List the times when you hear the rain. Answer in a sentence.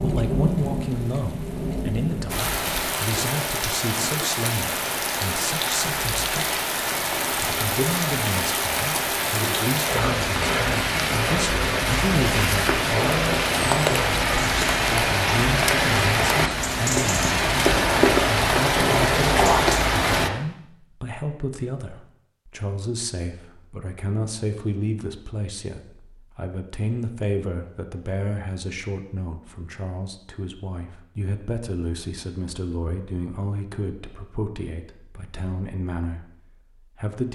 You can hear the rain from 0.0 to 20.3 s.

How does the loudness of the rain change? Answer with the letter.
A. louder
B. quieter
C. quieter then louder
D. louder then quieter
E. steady
A.